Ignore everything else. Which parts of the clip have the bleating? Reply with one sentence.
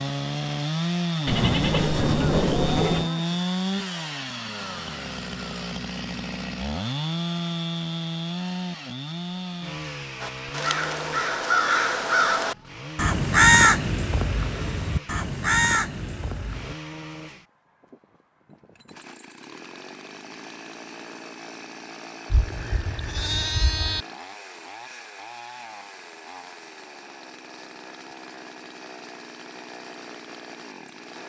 You can hear the bleating from 1.2 to 3.1 s and from 22.3 to 24.1 s.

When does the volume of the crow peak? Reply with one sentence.
The volume of the crow peaks at 14 seconds.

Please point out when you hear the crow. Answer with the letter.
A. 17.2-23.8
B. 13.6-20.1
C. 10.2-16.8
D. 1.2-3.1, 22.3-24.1
C.